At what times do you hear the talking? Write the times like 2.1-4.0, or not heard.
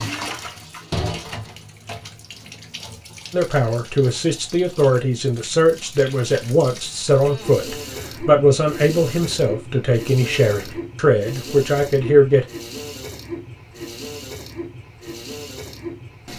3.3-12.4.